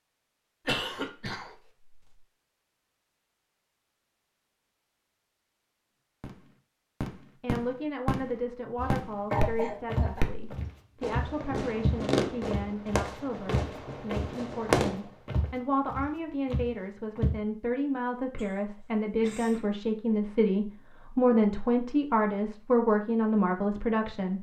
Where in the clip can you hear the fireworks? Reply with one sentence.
You can hear the fireworks from 6.2 to 15.1 s.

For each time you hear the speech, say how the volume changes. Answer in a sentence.
The speech can be heard from 7.4 to 24.3 s, getting louder.